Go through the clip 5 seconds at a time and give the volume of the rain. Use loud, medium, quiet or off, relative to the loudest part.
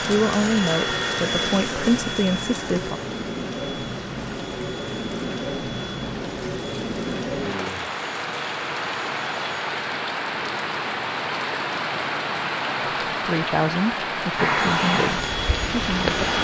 medium, loud, loud, loud.